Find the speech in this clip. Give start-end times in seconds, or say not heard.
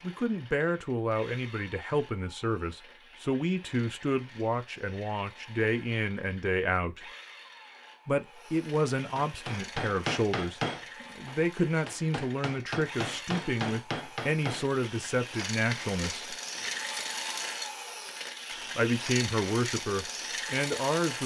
0.0-7.0, 8.1-16.4, 18.8-21.2.